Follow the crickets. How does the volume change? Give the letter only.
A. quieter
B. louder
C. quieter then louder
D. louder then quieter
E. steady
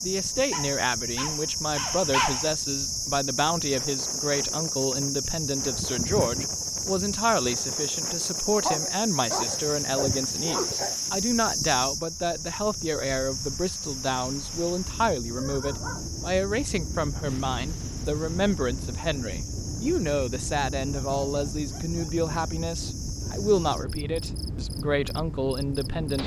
A.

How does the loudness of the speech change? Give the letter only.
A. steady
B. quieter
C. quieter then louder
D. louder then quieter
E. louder
A.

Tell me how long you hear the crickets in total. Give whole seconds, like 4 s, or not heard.
26 s.